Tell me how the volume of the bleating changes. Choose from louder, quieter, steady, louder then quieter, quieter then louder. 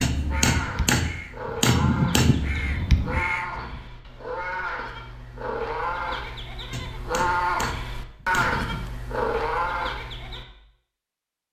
louder.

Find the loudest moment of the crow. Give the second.
3 s.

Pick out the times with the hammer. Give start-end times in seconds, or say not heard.
0.0-2.4, 6.7-8.9.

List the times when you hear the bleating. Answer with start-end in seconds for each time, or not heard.
0.3-10.4.